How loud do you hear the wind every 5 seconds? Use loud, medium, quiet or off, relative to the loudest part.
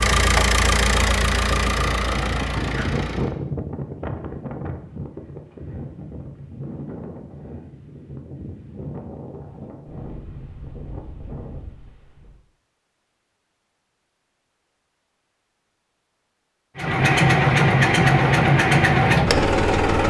loud, medium, medium, off.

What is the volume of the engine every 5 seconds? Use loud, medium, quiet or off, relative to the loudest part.
medium, off, off, loud.